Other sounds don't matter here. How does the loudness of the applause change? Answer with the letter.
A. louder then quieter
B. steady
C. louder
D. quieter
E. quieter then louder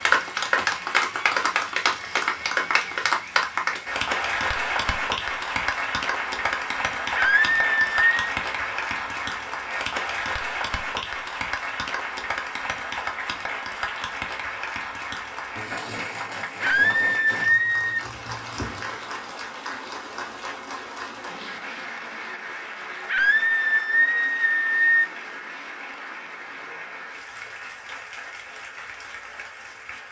D.